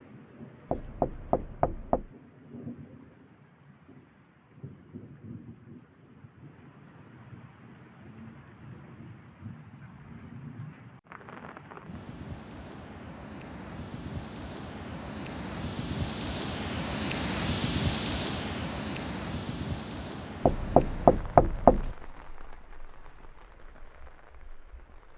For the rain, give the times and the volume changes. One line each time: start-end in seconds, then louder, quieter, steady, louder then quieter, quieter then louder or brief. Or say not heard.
0.0-25.1 louder then quieter.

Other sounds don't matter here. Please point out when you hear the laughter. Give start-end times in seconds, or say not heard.
not heard.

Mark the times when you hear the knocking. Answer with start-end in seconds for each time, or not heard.
0.7-2.1, 20.4-21.9.